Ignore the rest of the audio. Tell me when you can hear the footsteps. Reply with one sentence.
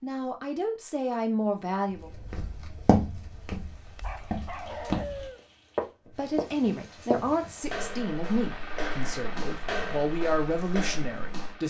You can hear the footsteps from 2.0 to 11.6 s.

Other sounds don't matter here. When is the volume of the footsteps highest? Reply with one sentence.
The volume of the footsteps peaks at 3 seconds.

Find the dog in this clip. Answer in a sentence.
You can hear the dog from 4.0 to 5.4 s.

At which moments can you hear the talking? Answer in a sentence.
You can hear the talking from 0.0 to 2.1 s and from 6.1 to 11.6 s.